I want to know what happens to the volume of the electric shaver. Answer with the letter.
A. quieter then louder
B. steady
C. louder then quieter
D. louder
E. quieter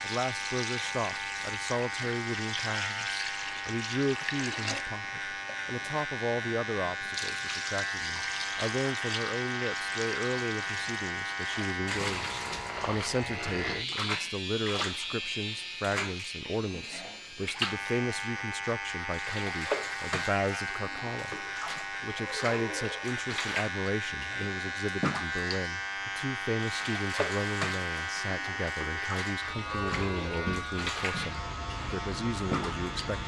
B.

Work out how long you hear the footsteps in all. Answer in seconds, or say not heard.
not heard.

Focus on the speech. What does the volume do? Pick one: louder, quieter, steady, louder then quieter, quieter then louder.
steady.